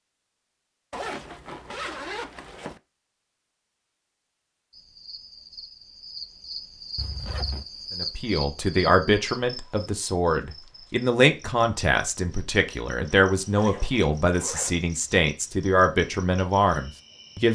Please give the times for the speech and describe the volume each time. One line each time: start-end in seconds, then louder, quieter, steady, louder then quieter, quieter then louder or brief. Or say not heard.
8.0-17.4 steady.